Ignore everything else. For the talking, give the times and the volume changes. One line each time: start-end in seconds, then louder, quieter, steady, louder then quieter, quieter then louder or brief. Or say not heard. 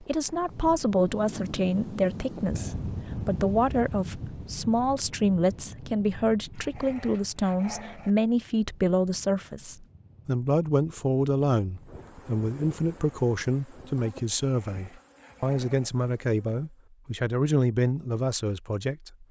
0.0-19.2 steady.